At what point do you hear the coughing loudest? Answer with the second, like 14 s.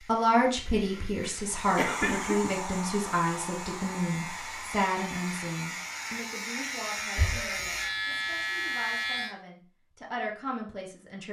2 s.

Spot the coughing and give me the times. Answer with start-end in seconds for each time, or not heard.
0.7-2.5, 7.2-8.2.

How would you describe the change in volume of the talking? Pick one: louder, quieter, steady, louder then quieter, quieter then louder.
quieter then louder.